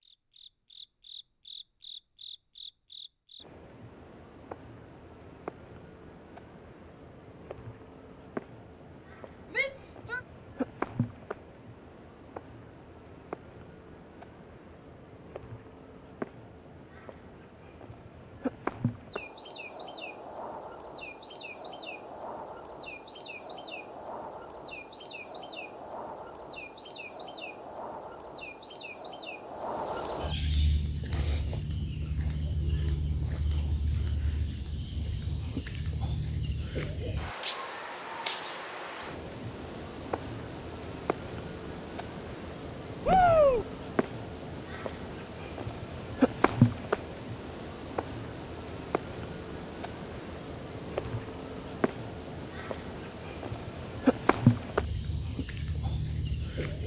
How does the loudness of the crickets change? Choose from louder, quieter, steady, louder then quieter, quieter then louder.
louder.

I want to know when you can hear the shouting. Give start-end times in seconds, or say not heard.
9.5-10.2, 43.0-43.6.